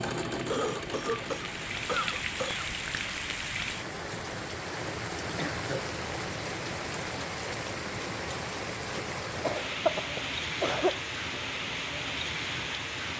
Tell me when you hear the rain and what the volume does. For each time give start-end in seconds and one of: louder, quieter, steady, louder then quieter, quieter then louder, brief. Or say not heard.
0.1-13.1 steady.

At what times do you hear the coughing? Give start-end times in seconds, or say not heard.
0.5-2.7, 5.3-6.0, 9.4-11.3.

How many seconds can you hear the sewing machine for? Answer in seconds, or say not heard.
2 s.